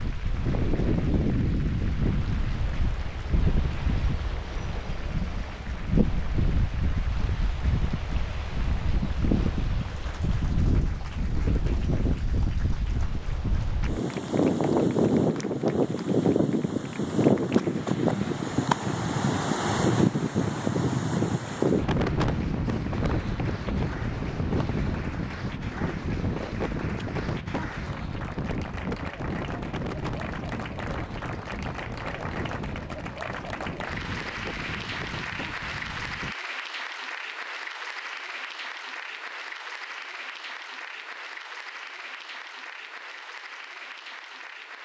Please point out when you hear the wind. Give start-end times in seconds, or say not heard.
0.0-36.4.